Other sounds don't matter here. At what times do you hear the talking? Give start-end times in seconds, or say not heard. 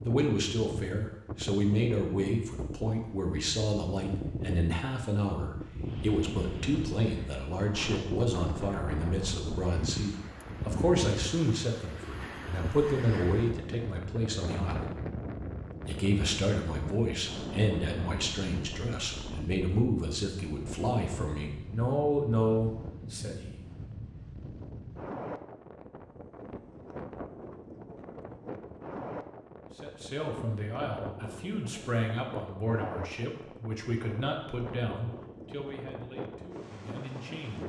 0.0-14.8, 15.8-23.6, 29.8-37.6.